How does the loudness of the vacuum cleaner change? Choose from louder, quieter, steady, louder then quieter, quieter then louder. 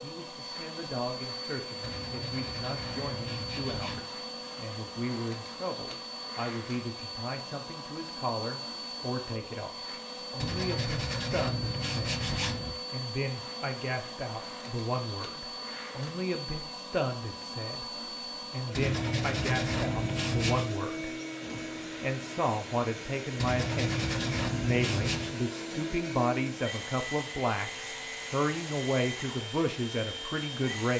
steady.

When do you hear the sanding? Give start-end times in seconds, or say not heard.
1.8-4.0, 10.4-12.8, 18.7-20.7, 23.4-25.4.